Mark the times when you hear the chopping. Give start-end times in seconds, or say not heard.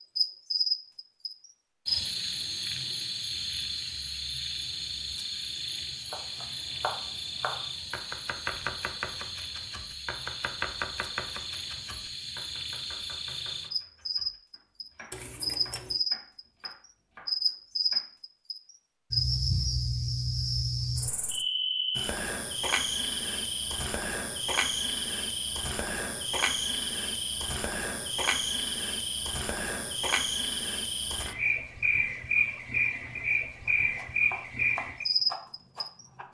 6.1-18.1, 33.6-36.2.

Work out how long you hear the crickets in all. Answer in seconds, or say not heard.
36 s.